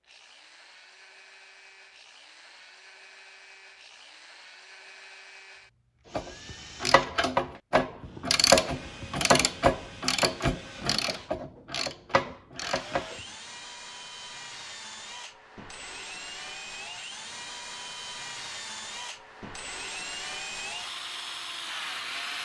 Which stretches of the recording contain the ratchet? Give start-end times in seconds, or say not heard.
6.1-13.2.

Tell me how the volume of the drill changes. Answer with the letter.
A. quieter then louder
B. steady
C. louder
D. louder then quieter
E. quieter
C.